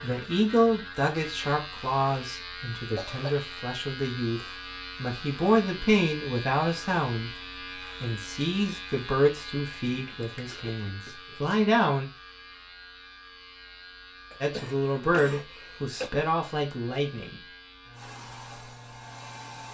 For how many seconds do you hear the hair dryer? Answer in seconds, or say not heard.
2 s.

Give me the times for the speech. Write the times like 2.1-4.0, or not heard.
0.0-12.1, 14.4-17.4.